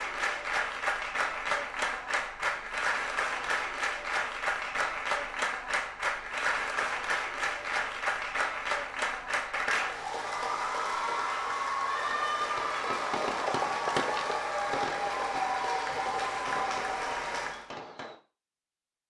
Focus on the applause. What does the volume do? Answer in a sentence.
The loudness of the applause stays about the same.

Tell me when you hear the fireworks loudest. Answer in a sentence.
The volume of the fireworks peaks at 14 seconds.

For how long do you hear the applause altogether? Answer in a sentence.
You can hear the applause for 18 seconds altogether.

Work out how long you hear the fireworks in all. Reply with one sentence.
You can hear the fireworks for 6 seconds altogether.